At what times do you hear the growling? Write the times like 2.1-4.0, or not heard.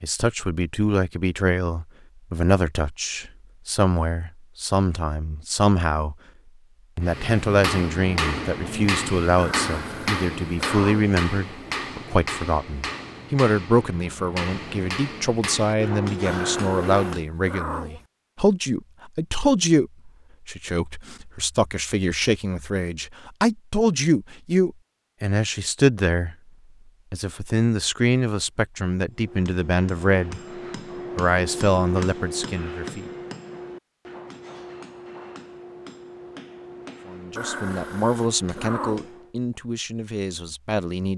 9.3-11.1, 16.2-18.1, 37.4-39.1.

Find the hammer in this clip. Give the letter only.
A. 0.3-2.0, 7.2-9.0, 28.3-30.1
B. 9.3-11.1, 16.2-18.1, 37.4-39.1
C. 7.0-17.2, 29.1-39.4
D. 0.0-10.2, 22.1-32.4
C.